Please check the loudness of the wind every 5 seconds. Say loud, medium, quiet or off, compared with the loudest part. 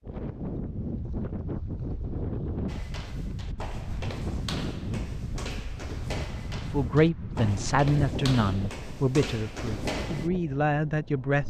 loud, loud, medium.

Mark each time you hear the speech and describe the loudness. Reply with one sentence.
The speech can be heard from 6.7 to 11.4 s, getting quieter then louder.